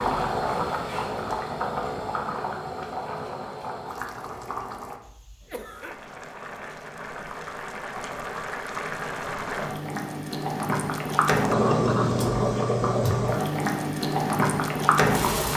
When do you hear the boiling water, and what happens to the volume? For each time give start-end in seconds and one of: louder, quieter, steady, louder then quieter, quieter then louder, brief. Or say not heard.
0.0-15.5 quieter then louder.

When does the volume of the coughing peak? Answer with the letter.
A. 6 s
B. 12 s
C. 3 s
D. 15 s
B.